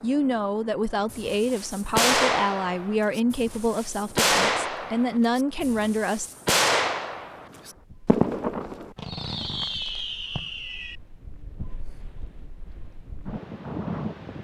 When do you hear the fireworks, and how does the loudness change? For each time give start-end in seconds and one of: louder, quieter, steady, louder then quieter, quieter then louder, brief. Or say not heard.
1.1-11.0 quieter.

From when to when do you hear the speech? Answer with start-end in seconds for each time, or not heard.
0.0-6.3.